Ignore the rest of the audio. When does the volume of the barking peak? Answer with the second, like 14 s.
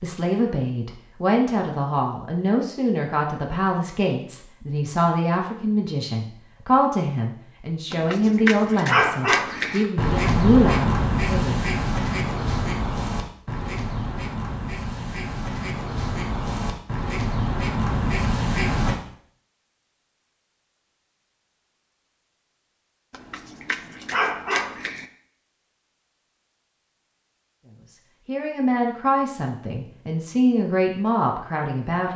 9 s.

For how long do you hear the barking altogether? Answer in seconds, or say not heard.
4 s.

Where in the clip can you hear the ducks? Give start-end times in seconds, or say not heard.
9.4-18.9.